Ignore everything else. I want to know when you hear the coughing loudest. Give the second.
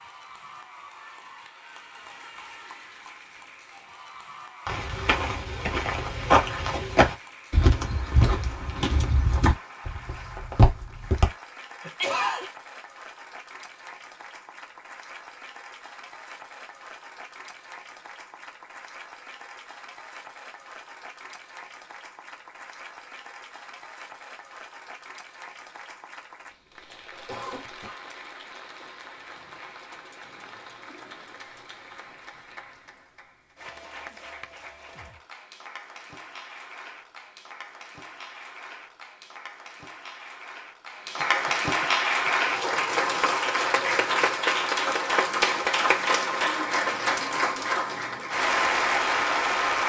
12 s.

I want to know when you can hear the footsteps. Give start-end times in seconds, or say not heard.
4.7-11.2.